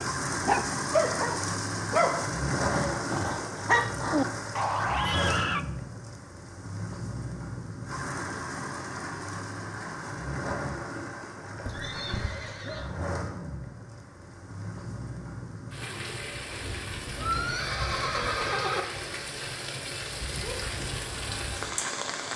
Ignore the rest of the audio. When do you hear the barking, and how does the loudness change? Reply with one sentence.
The barking can be heard from 0.0 to 5.7 s, getting quieter then louder.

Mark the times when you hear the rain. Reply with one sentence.
You can hear the rain from 0.0 to 22.3 s.